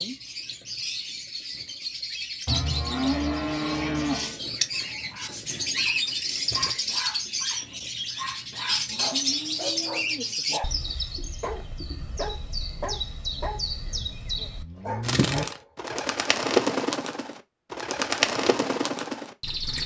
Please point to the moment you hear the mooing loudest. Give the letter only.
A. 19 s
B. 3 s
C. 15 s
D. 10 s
B.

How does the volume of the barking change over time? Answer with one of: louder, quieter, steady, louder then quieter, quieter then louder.
steady.